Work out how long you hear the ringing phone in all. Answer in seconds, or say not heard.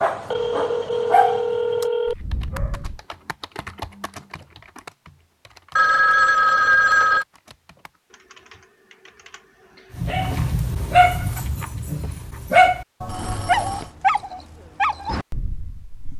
4 s.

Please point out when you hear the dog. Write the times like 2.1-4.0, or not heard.
0.0-3.0, 9.9-16.1.